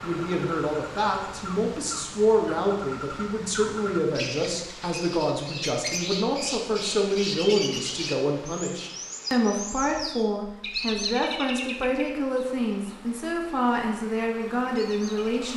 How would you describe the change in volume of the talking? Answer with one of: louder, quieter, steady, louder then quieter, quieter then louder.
steady.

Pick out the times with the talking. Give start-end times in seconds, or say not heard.
0.0-15.5.